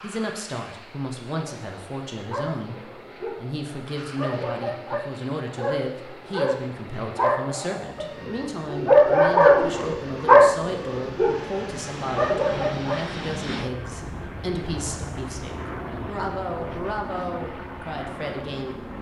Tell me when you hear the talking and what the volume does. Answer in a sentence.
You can hear the talking from 0.0 to 18.8 s, at a steady volume.